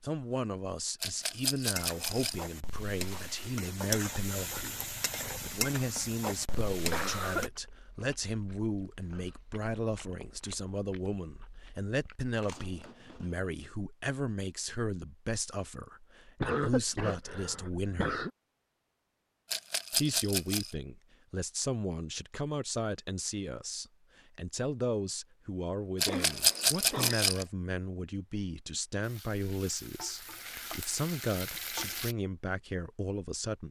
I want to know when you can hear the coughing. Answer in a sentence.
The coughing can be heard from 6.5 to 7.5 s, from 16.4 to 18.3 s and from 26.1 to 27.2 s.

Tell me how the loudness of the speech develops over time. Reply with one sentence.
The volume of the speech stays about the same.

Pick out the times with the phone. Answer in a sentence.
You can't hear the phone here.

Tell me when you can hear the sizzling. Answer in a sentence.
You can hear the sizzling from 1.7 to 7.5 s and from 29.0 to 32.1 s.